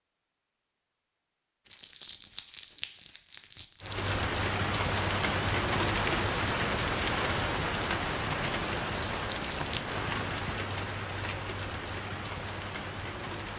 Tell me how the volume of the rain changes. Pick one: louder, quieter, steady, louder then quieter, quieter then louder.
quieter.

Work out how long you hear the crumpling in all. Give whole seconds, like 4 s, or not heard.
4 s.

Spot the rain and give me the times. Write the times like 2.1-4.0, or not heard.
3.8-13.5.